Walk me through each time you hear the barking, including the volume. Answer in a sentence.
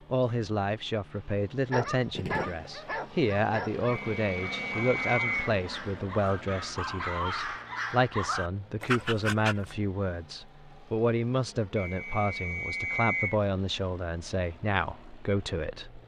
The barking can be heard from 1.7 to 9.8 s, getting quieter then louder.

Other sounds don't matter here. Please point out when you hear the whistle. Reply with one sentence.
The whistle can be heard from 3.9 to 5.5 s and from 11.8 to 13.3 s.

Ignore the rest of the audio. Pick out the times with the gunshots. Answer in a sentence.
You can hear the gunshots from 2.1 to 2.7 s.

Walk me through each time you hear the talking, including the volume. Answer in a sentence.
The talking can be heard from 0.1 to 16.0 s, at a steady volume.